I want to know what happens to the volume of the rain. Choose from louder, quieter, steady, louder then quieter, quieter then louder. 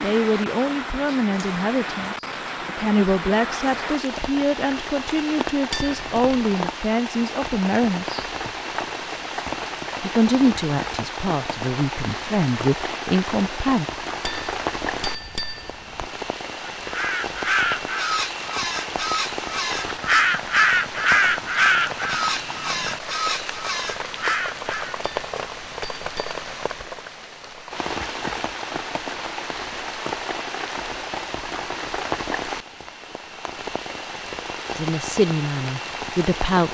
steady.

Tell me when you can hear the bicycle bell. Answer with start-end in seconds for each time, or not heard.
5.7-6.5, 14.2-16.1, 25.0-26.9.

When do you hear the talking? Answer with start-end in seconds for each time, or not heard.
0.0-8.2, 10.0-13.8, 34.8-36.6.